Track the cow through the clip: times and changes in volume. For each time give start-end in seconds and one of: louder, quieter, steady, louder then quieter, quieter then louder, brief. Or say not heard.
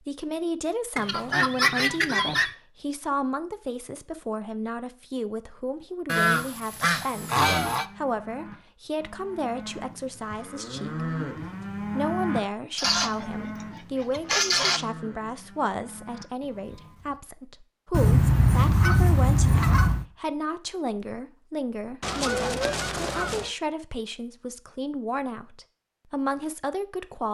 7.1-17.2 louder then quieter.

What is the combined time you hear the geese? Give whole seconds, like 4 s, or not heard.
8 s.